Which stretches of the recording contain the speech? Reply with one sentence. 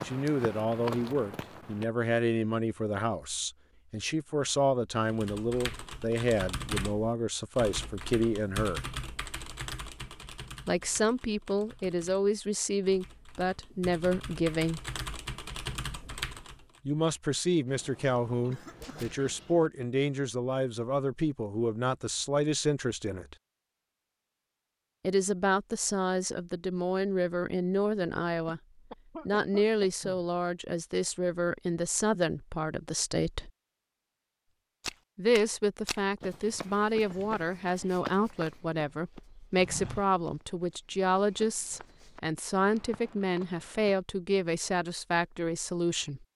The speech can be heard from 0.0 to 8.8 s, from 10.7 to 14.8 s, from 16.9 to 23.4 s, from 25.0 to 28.6 s, from 29.2 to 33.5 s and from 35.1 to 46.2 s.